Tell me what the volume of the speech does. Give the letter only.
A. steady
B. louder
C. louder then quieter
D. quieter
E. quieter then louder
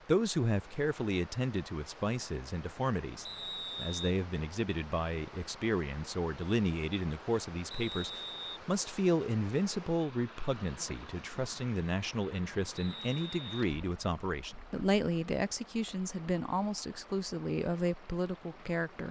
A.